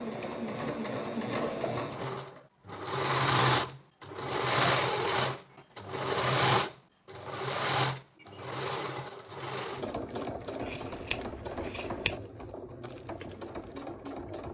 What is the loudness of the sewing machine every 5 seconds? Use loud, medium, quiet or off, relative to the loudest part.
loud, loud, medium.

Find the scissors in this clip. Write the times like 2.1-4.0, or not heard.
10.6-12.2.